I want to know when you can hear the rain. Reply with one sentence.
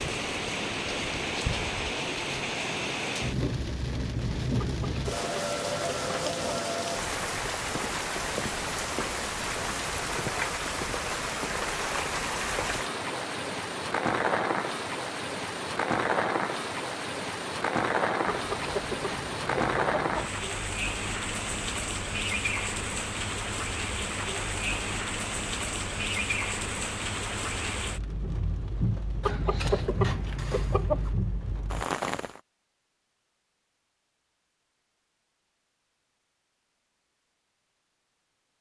The rain can be heard from 0.0 to 32.4 s.